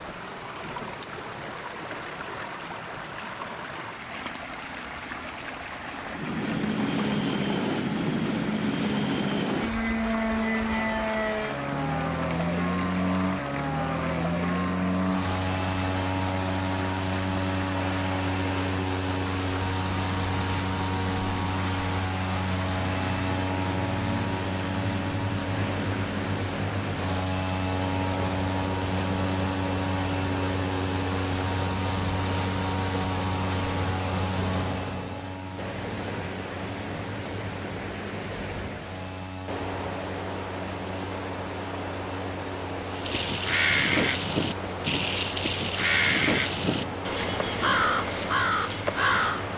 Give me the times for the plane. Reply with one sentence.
The plane can be heard from 6.0 to 49.5 s.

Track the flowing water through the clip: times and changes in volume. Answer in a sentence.
The flowing water can be heard from 0.0 to 49.5 s, at a steady volume.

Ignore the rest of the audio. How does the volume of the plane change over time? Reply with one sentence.
The loudness of the plane goes down.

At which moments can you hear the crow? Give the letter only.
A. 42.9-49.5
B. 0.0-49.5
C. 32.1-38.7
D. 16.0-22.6
A.